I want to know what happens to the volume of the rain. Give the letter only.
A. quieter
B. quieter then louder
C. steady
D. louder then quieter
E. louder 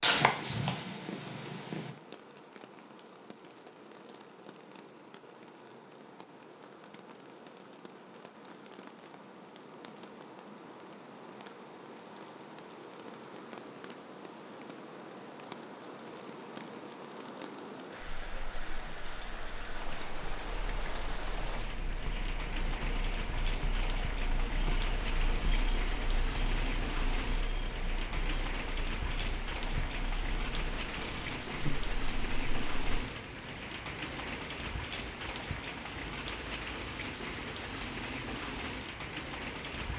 E.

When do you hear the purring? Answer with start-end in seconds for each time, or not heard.
0.0-1.9, 18.0-33.0.